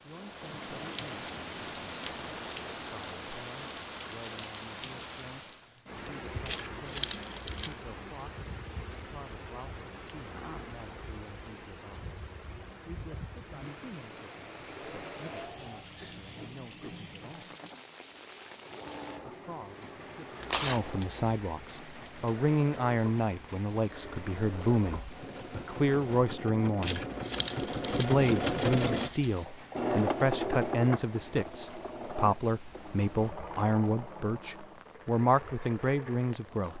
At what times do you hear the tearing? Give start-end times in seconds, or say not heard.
6.5-7.8, 20.4-21.2, 26.8-29.4.